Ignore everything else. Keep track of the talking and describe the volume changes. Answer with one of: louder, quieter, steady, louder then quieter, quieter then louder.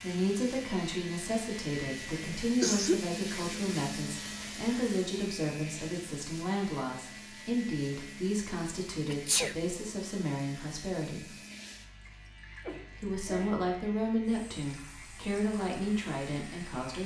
steady.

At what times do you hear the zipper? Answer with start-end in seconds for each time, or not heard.
not heard.